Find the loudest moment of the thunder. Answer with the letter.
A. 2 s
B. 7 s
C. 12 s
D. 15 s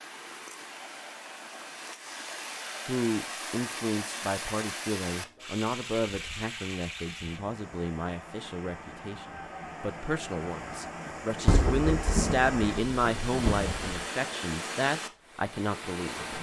C.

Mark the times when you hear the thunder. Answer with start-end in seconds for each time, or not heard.
11.4-14.1.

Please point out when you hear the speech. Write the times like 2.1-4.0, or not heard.
2.9-16.2.